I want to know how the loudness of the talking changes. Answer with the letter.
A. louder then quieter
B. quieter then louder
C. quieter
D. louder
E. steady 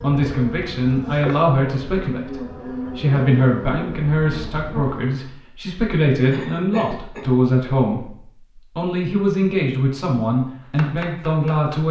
E.